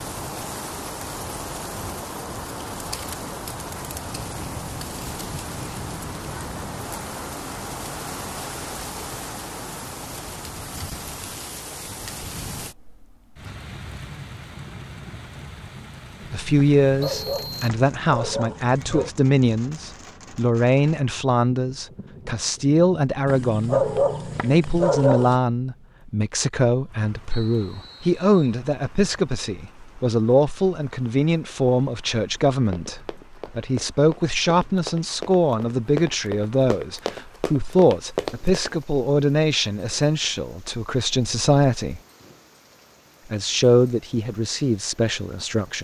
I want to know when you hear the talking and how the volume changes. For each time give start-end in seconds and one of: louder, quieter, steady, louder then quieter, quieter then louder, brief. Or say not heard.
16.3-23.8 steady
24.4-42.0 steady
43.3-45.8 brief.